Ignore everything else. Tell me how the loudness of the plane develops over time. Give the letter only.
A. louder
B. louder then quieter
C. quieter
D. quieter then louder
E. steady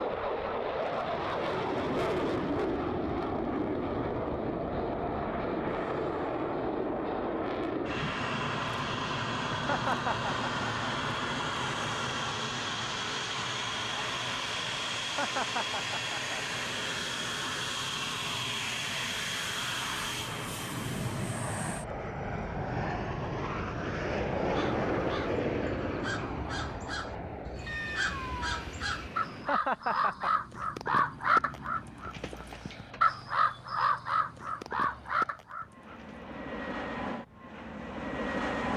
C.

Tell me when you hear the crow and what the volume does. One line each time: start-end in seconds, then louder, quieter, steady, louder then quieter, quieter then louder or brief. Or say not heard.
24.4-36.1 louder.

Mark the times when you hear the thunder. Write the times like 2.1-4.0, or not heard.
not heard.